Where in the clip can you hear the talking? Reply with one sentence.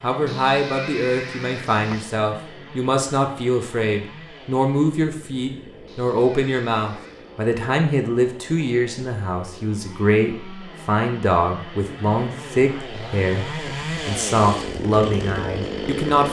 You can hear the talking from 0.0 to 16.2 s.